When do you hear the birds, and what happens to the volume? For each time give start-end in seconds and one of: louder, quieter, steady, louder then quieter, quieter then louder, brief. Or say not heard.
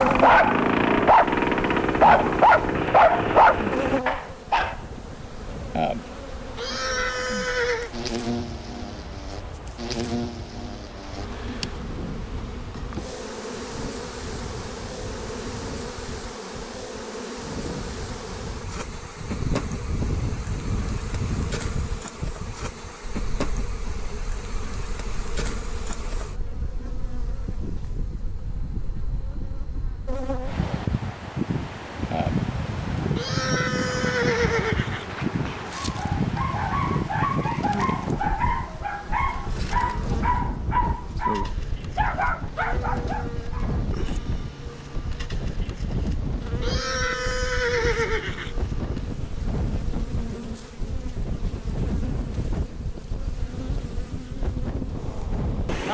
not heard.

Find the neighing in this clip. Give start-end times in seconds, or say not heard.
6.5-7.9, 33.1-35.0, 46.6-48.5.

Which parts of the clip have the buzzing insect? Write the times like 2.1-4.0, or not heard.
0.0-55.8.